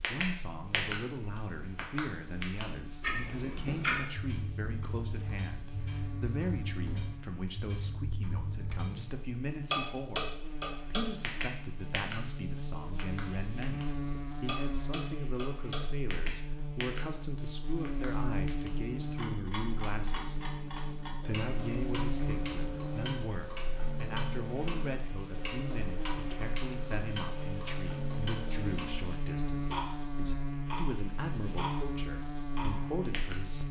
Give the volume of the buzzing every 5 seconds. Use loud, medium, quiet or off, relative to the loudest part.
medium, medium, loud, loud, loud, loud, loud.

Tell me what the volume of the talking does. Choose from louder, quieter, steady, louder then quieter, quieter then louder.
steady.